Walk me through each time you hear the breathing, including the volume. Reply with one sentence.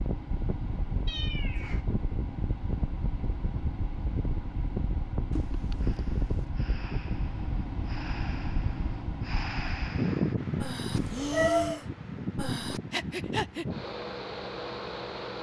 The breathing can be heard from 5.8 to 13.7 s, getting louder.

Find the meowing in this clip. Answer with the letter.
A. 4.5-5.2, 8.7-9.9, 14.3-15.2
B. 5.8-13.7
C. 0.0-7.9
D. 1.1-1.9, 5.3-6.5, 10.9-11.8
D.